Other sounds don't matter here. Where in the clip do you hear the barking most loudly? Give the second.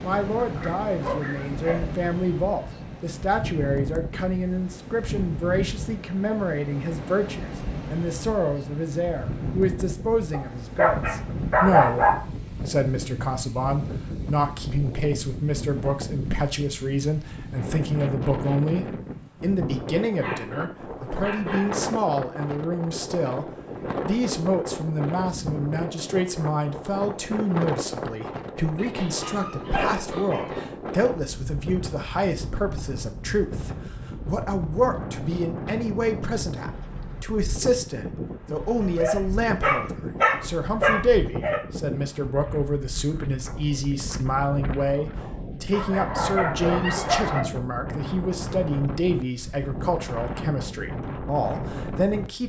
12 s.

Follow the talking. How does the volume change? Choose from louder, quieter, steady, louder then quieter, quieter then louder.
steady.